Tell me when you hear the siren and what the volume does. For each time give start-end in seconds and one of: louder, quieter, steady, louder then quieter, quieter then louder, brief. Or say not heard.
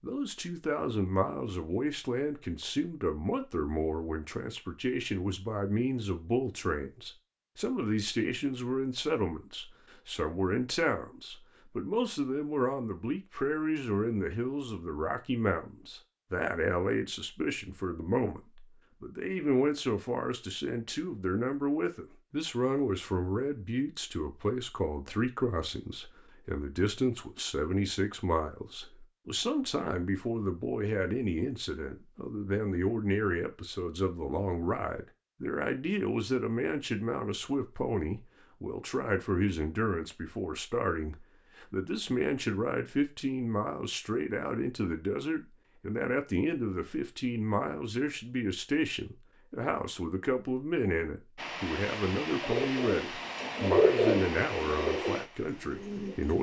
not heard.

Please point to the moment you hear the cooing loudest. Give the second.
54 s.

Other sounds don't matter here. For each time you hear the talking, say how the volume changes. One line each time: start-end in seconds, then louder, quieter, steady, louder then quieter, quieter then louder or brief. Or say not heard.
0.0-56.3 steady.